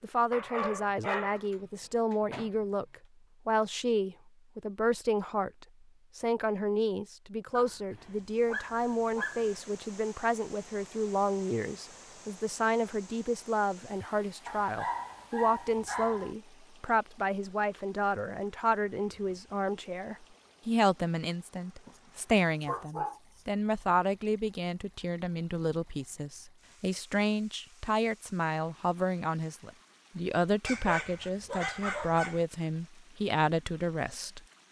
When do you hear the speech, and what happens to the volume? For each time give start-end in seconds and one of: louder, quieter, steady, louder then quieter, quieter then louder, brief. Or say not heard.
0.0-34.4 steady.